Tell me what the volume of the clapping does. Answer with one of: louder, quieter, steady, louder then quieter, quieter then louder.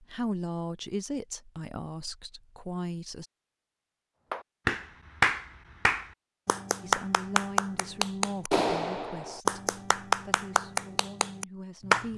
quieter.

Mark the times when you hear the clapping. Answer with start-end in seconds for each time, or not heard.
4.3-12.1.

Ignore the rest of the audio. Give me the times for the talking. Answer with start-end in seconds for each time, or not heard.
0.0-3.2, 6.8-12.1.